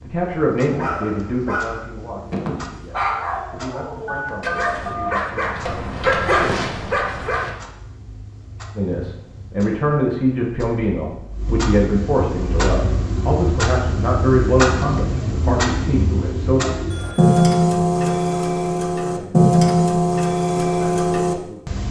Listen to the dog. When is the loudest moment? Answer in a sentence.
The loudest moment of the dog is at 6 seconds.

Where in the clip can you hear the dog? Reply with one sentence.
You can hear the dog from 0.6 to 7.5 s.